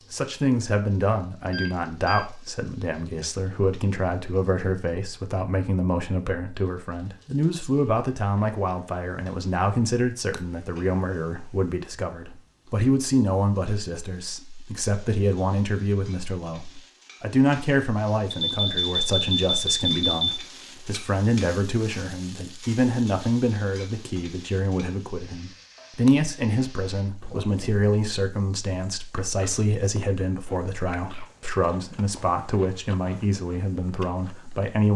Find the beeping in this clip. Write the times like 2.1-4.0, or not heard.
1.5-2.2, 18.3-20.3, 27.2-27.9.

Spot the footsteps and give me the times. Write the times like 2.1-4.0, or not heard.
not heard.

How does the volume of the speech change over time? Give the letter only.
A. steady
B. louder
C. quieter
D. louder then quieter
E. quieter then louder
A.